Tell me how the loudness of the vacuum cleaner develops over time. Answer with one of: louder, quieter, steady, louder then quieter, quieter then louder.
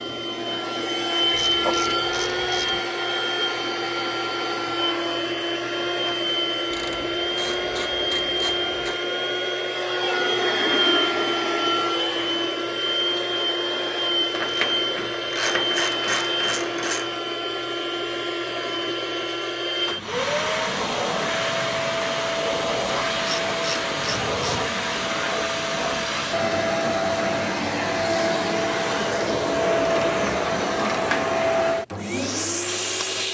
steady.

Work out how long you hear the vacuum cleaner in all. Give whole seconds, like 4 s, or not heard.
33 s.